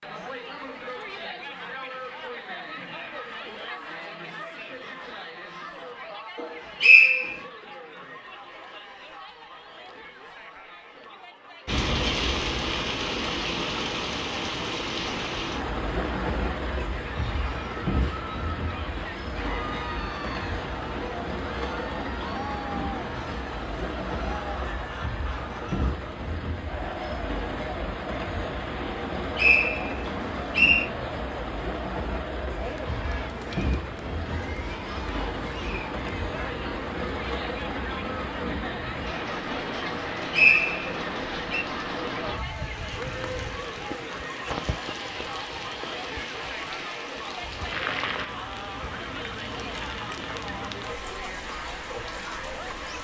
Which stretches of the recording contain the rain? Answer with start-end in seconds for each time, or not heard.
11.7-53.0.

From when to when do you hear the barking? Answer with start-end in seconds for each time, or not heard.
not heard.